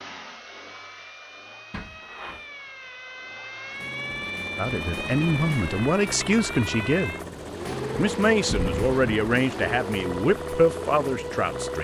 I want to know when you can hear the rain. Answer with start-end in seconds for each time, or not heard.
not heard.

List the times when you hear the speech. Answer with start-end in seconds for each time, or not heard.
4.5-7.2, 8.0-11.7.